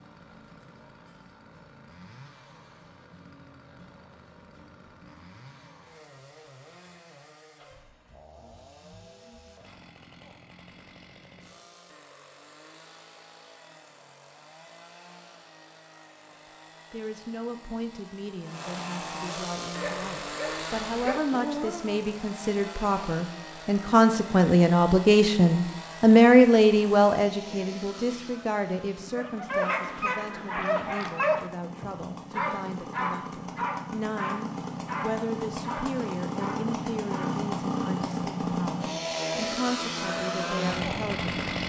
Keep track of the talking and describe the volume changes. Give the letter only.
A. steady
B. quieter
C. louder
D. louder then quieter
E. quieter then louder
D.